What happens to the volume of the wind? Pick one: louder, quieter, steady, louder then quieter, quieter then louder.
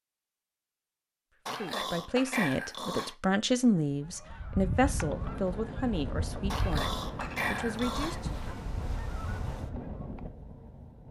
steady.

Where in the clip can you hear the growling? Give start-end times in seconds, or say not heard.
1.4-3.1, 6.5-8.2.